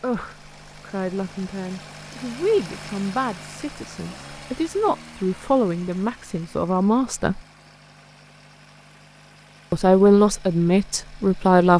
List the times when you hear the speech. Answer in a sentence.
You can hear the speech from 0.0 to 7.4 s and from 9.7 to 11.7 s.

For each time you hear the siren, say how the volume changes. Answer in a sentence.
You can't hear the siren here.